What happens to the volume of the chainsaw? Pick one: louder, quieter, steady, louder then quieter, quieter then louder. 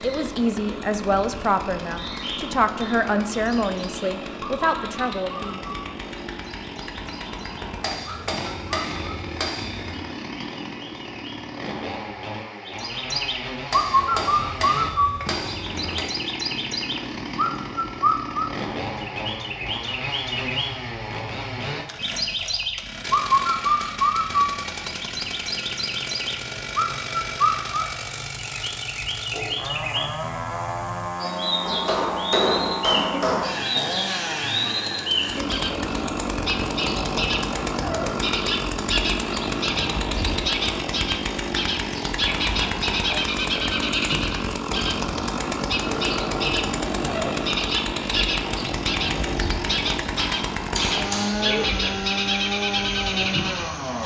louder.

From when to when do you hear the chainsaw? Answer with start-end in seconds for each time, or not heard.
0.0-54.0.